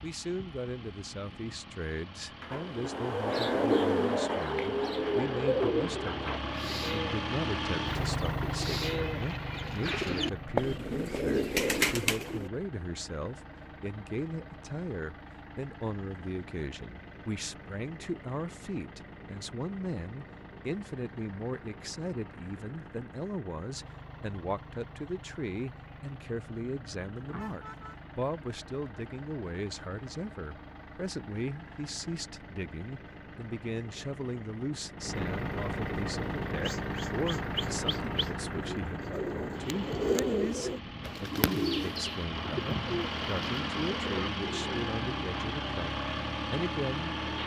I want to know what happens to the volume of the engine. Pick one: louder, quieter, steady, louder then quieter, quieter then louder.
quieter then louder.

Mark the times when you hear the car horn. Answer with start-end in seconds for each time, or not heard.
27.2-28.1.